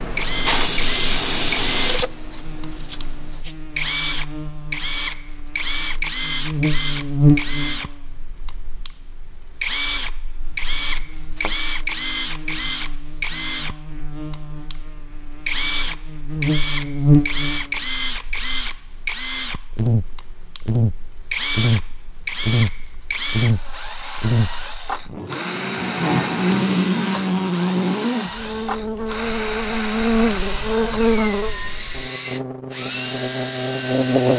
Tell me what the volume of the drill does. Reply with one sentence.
The volume of the drill stays about the same.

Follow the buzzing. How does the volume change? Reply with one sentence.
The loudness of the buzzing goes down, then up.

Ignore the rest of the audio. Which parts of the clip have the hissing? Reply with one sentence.
You can hear the hissing from 0.0 to 3.5 s.